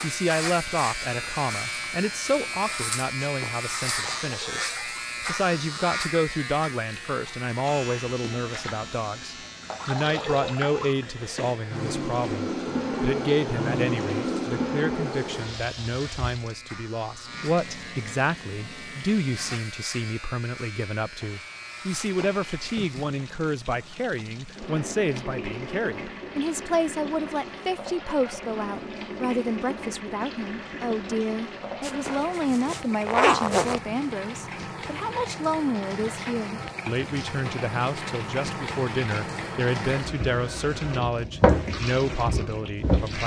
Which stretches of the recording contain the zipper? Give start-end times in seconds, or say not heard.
3.2-4.2, 21.9-22.8, 31.8-33.8.